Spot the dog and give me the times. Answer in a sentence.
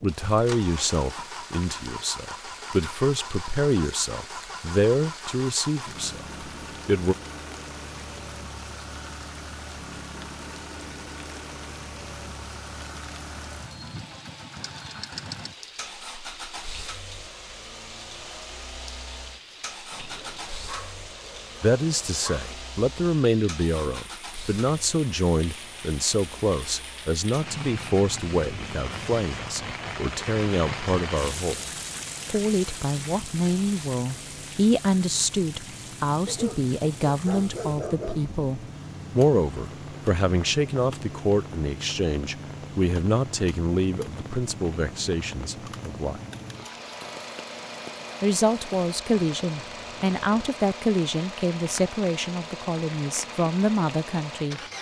The dog can be heard from 19.9 to 22.5 s and from 36.2 to 38.3 s.